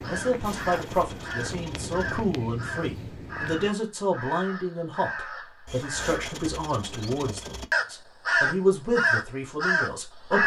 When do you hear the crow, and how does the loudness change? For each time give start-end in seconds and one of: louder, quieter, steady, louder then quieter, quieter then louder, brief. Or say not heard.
0.0-10.4 louder.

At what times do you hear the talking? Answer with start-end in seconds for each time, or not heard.
0.0-10.4.